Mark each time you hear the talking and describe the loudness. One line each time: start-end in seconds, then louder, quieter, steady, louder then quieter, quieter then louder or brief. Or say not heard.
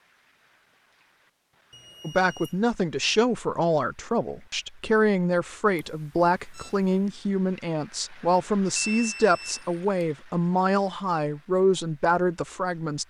2.0-13.0 steady.